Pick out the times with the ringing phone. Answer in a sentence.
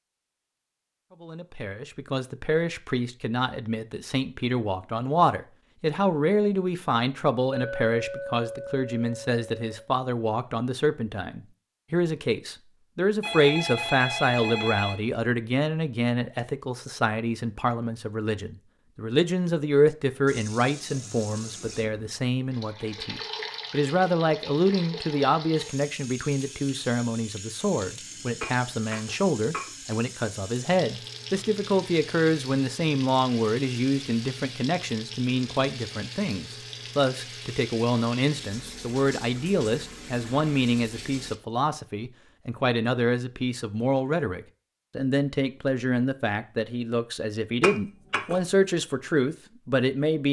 The ringing phone can be heard from 13.2 to 15.0 s.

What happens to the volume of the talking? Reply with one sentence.
The volume of the talking stays about the same.